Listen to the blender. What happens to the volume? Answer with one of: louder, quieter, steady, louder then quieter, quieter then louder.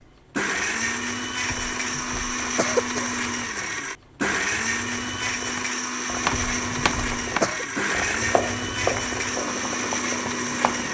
steady.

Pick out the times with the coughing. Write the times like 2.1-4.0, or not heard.
1.4-3.2, 6.3-7.7.